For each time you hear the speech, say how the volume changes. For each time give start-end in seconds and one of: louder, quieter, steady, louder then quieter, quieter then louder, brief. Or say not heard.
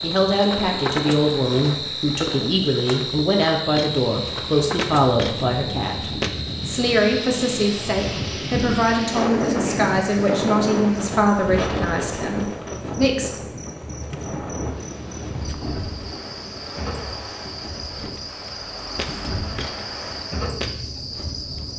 0.0-13.3 steady.